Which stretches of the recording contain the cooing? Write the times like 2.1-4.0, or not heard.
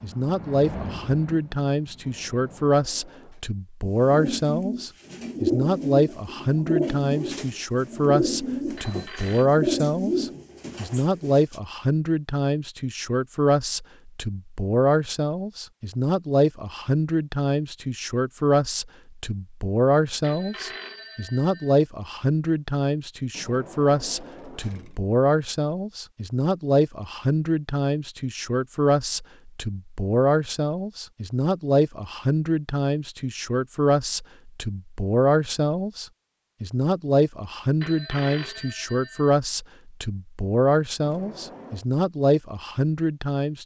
3.9-11.6.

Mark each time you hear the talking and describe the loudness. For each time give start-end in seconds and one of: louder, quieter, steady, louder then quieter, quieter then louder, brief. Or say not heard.
0.0-43.6 steady.